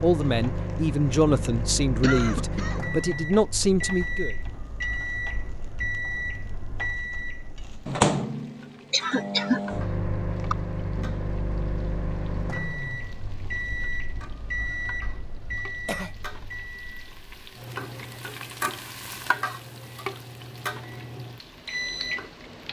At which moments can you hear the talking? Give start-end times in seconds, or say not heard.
0.0-4.3.